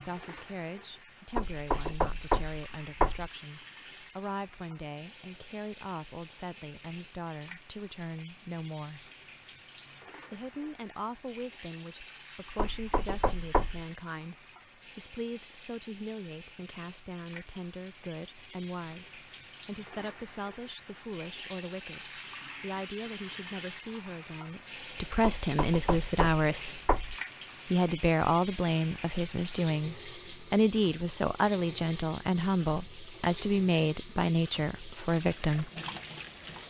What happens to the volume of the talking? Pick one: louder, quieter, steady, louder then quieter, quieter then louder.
louder.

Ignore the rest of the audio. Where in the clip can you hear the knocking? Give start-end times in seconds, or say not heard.
1.4-3.3, 12.6-13.8, 25.2-27.1.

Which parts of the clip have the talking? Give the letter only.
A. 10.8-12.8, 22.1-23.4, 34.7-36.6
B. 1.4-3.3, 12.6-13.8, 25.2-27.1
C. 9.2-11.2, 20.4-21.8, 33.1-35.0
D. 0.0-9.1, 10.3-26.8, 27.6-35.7
D.